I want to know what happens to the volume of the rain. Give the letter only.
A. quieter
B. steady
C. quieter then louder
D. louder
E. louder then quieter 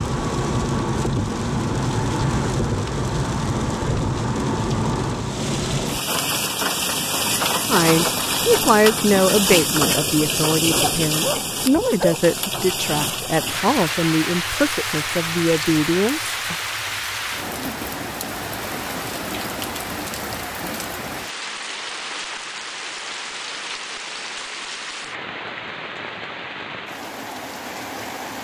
A.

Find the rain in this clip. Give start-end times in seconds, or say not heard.
0.0-28.4.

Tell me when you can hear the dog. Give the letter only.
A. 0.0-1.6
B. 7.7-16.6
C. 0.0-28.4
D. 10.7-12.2
D.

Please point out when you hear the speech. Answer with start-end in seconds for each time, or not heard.
7.7-16.6.